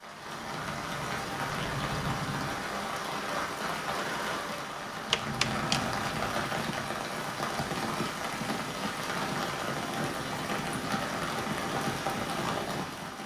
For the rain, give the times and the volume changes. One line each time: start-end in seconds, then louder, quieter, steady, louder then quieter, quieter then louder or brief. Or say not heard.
0.0-13.2 steady.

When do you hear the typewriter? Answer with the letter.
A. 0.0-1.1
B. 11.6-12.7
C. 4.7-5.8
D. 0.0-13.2
C.